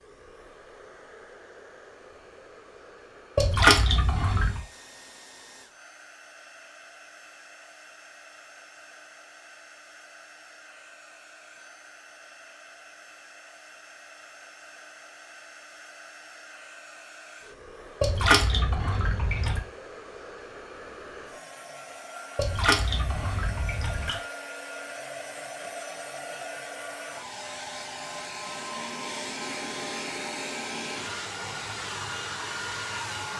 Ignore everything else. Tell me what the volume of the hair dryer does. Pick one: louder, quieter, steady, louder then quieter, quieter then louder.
louder.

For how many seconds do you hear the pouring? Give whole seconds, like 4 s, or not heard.
5 s.